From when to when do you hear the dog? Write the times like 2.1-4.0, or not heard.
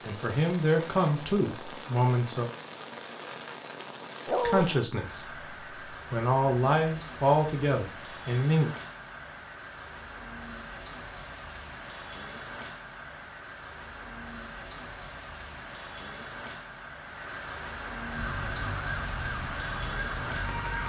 4.2-4.7.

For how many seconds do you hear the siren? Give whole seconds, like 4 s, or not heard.
3 s.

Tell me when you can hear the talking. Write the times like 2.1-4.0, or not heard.
0.1-2.5, 4.5-8.7.